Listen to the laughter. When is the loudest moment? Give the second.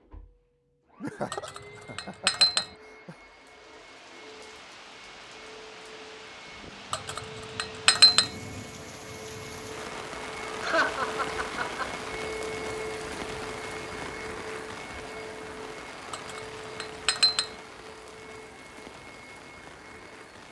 11 s.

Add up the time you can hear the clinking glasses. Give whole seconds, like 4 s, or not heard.
4 s.